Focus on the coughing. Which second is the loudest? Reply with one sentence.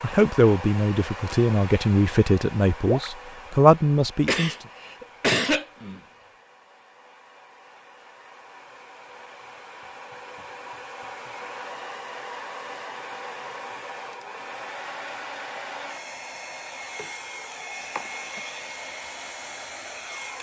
The loudest moment of the coughing is at 5 seconds.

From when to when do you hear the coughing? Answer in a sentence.
You can hear the coughing from 4.2 to 6.0 s and from 17.9 to 18.4 s.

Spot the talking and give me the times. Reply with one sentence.
The talking can be heard from 0.0 to 4.5 s.